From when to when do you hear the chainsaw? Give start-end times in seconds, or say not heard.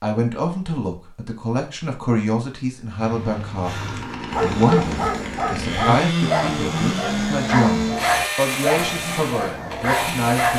3.6-10.5.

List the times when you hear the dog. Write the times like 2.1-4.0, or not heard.
3.0-10.5.